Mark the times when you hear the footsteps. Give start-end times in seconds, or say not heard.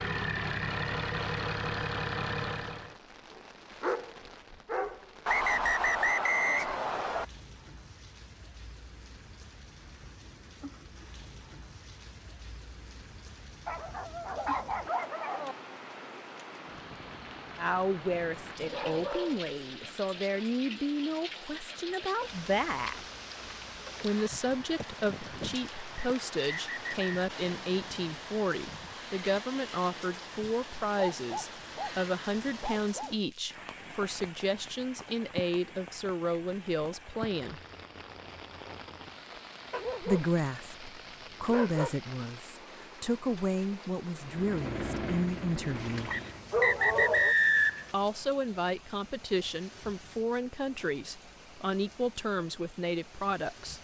not heard.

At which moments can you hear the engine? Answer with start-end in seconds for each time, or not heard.
0.0-3.0, 44.2-46.5.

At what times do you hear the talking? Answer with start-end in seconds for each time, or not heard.
17.6-23.0, 24.0-37.6, 40.0-46.1, 47.9-53.7.